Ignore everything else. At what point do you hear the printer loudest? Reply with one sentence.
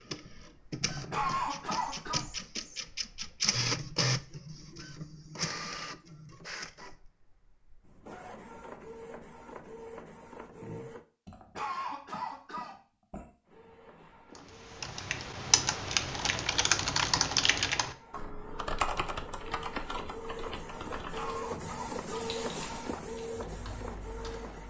The loudest moment of the printer is at 4 seconds.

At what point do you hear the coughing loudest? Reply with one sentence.
The loudest moment of the coughing is at 1 second.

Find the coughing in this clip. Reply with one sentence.
The coughing can be heard from 0.8 to 2.2 s, from 11.2 to 13.2 s and from 21.1 to 22.9 s.